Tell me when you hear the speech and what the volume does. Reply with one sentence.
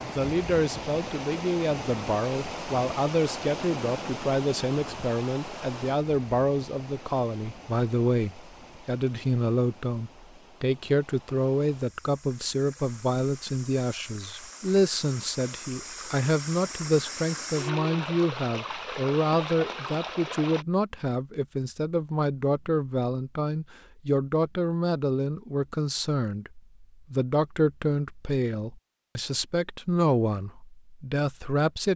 The speech can be heard from 0.0 to 31.9 s, at a steady volume.